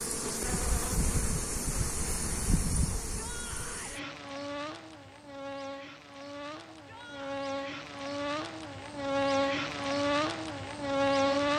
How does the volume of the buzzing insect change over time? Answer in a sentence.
The loudness of the buzzing insect goes down, then up.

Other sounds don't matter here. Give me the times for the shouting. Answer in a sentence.
The shouting can be heard from 3.1 to 4.0 s and from 6.7 to 7.4 s.